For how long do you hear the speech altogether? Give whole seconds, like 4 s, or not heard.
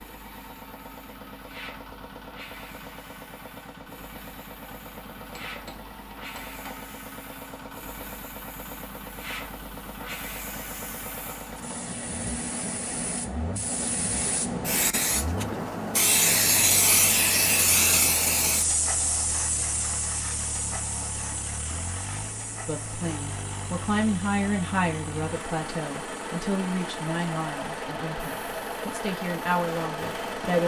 8 s.